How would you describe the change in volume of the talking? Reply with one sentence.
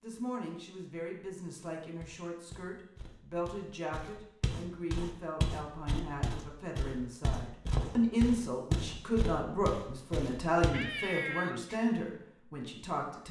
The loudness of the talking goes up.